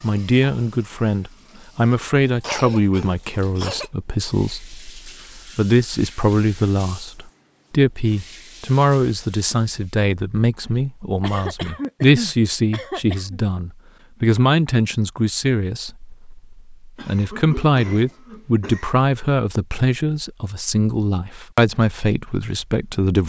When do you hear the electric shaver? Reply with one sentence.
The electric shaver can't be heard in this clip.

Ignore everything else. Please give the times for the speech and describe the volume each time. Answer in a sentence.
The speech can be heard from 0.0 to 23.2 s, at a steady volume.